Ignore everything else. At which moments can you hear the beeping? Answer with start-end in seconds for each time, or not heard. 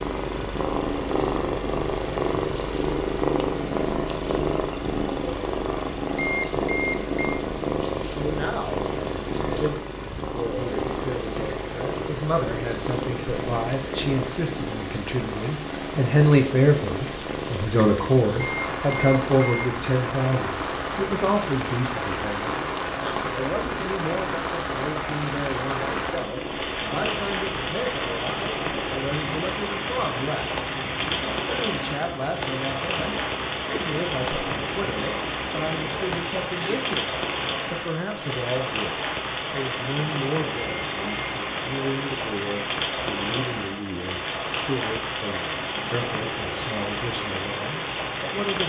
6.0-7.4, 18.2-19.8, 40.4-41.4.